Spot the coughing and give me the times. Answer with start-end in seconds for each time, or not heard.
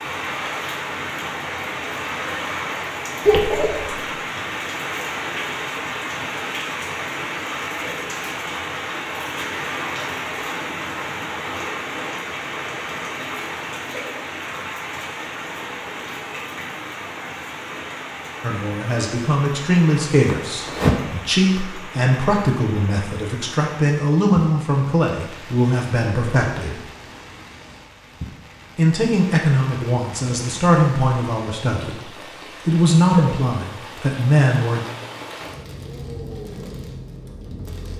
3.2-4.0, 20.3-20.9.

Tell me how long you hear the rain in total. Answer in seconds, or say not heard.
38 s.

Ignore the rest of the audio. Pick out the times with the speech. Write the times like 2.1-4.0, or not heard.
18.4-26.8, 28.8-34.9.